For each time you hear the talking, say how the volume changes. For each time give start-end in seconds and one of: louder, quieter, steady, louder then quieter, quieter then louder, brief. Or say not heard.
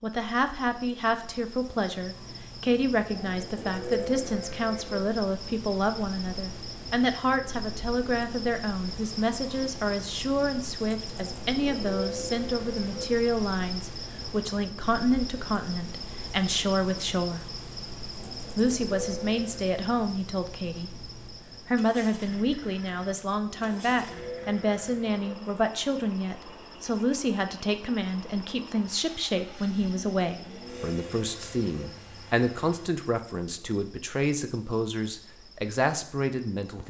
0.0-17.4 steady
18.6-20.9 brief
21.6-36.8 steady.